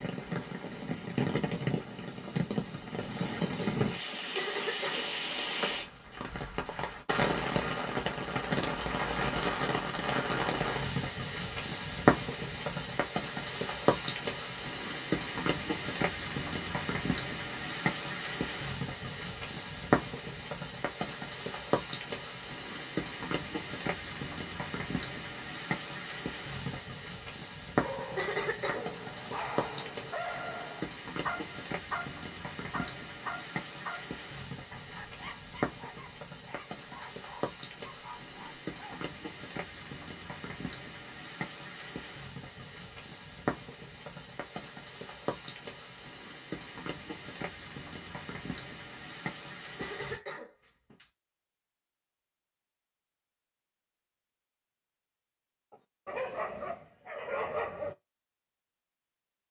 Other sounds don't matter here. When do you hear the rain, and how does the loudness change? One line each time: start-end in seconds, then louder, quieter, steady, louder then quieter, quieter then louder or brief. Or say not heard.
0.0-50.2 quieter.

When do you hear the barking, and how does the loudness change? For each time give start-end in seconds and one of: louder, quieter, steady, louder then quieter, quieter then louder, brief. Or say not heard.
27.8-39.0 quieter
56.0-58.0 brief.